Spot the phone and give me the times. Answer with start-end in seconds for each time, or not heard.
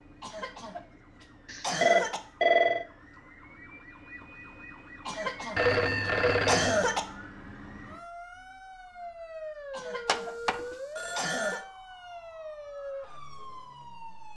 1.4-2.9, 5.5-6.9, 10.1-11.7.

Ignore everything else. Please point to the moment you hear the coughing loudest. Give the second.
7 s.